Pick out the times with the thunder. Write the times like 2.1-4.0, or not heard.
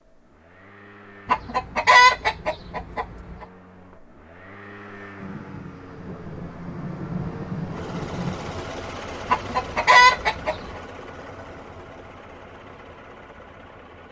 5.2-8.7.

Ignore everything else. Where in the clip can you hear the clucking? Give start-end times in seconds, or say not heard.
1.2-3.5, 9.3-10.6.